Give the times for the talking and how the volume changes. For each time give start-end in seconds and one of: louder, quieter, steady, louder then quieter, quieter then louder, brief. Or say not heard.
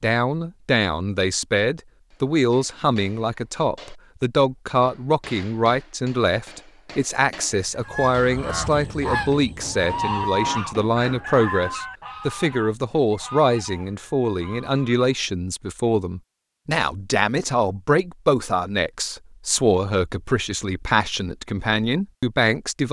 0.0-22.8 steady.